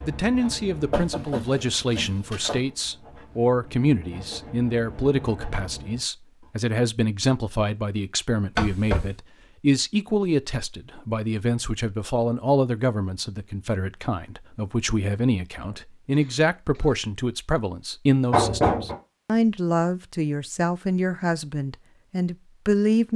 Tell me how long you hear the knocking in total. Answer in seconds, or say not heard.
3 s.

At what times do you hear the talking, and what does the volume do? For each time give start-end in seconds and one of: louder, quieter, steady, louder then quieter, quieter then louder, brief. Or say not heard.
0.0-23.1 steady.